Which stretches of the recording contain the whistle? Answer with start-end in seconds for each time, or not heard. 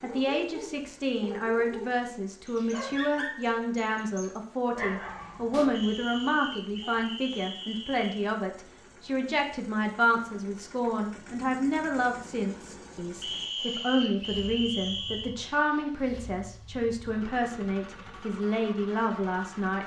5.7-8.2, 13.2-15.3.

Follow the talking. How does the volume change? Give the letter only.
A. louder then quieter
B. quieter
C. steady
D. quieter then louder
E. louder
C.